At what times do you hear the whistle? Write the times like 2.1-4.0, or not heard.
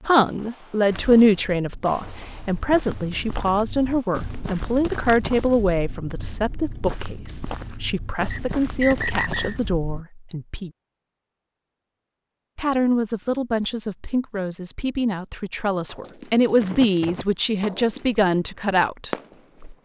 8.3-9.6.